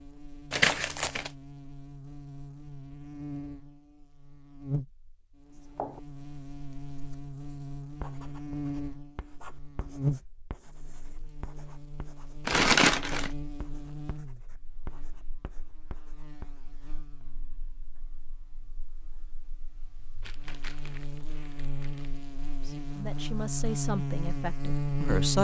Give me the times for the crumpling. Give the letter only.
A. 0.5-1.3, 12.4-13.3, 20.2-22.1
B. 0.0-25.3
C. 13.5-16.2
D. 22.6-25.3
A.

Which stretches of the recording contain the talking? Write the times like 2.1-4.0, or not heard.
22.6-25.3.